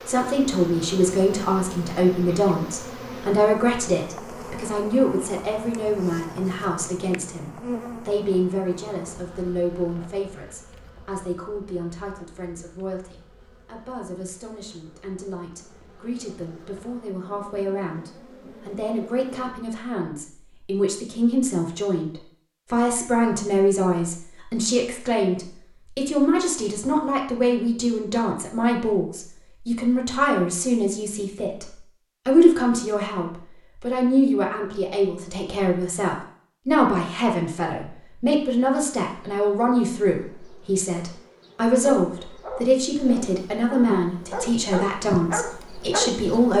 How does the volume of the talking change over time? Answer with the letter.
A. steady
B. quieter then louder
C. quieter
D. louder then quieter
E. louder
B.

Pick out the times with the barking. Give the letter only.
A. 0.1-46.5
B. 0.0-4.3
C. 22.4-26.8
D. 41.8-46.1
D.